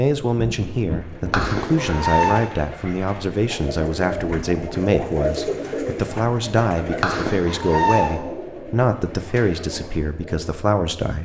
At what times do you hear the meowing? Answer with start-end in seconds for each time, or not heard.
1.3-2.5, 7.0-8.2.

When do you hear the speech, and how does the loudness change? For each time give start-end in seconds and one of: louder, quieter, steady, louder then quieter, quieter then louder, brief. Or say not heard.
0.0-11.2 steady.